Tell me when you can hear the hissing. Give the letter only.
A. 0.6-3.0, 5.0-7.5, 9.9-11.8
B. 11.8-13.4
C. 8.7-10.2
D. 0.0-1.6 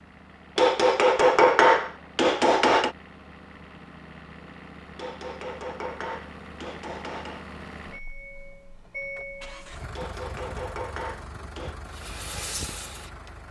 B.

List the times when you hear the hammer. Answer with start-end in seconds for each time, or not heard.
0.6-3.0, 5.0-7.5, 9.9-11.8.